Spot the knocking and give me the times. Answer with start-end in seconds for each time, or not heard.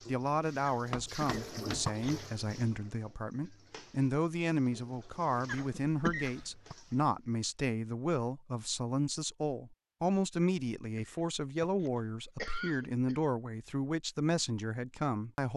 0.9-1.9.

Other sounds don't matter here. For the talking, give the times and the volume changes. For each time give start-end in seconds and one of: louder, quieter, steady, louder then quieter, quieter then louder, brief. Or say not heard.
0.1-15.5 steady.